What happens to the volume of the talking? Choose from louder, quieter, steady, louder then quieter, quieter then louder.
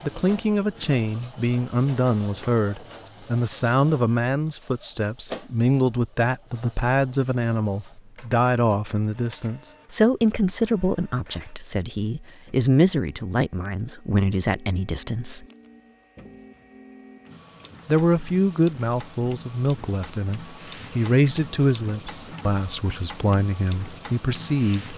steady.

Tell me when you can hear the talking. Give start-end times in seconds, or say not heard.
0.0-15.4, 17.9-24.9.